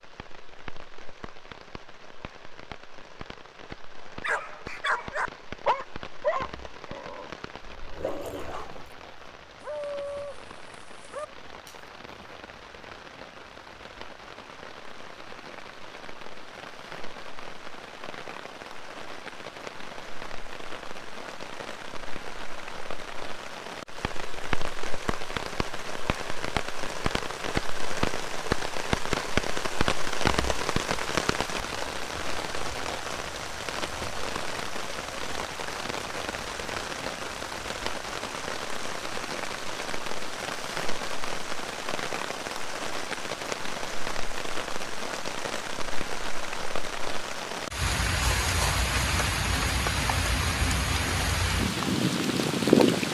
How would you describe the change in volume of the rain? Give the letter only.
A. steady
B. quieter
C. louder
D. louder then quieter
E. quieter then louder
C.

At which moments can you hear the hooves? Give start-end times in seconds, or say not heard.
not heard.